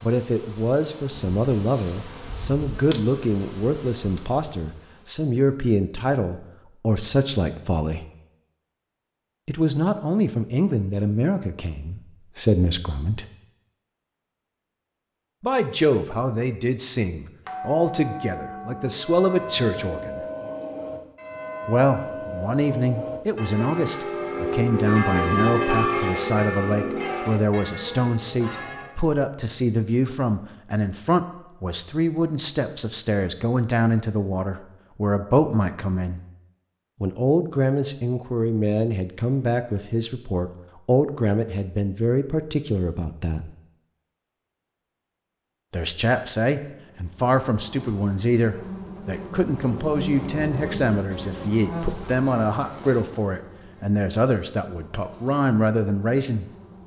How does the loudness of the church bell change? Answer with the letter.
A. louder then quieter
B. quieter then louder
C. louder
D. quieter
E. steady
A.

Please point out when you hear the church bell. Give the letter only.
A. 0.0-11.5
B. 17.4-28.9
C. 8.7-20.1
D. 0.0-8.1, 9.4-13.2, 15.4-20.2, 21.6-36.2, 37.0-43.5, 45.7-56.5
B.